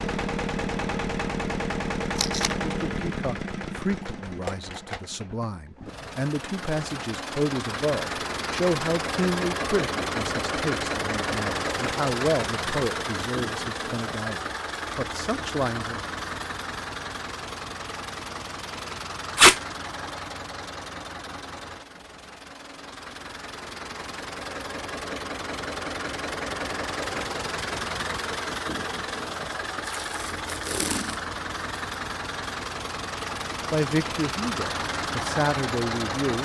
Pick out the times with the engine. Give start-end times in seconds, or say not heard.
0.0-36.3.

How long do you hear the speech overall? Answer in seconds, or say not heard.
16 s.